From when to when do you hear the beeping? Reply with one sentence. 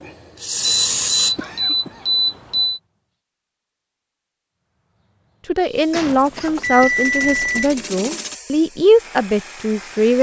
You can hear the beeping from 0.6 to 2.8 s and from 6.2 to 7.7 s.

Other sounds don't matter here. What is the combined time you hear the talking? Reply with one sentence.
The talking can be heard for 5 seconds in total.